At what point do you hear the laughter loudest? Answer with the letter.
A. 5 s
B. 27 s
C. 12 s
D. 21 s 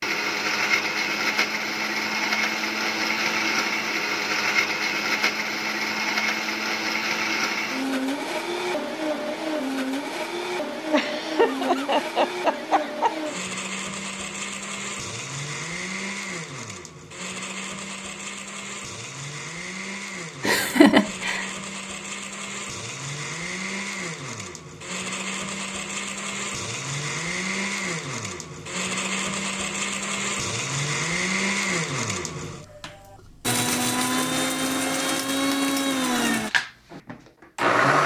D.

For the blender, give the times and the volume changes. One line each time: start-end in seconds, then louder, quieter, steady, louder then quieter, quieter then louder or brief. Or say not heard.
0.0-38.0 quieter then louder.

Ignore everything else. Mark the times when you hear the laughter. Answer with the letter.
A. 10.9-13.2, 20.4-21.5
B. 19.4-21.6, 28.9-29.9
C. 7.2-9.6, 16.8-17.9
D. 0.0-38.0
A.